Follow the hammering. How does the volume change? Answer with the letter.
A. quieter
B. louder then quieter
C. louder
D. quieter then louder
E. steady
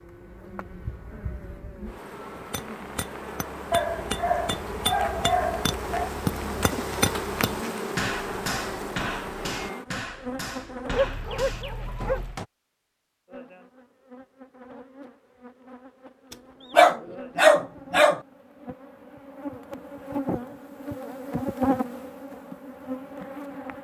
B.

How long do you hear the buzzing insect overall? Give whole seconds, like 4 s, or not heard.
22 s.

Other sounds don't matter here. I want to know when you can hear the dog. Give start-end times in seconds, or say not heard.
3.7-6.1, 10.9-12.4, 16.7-18.2.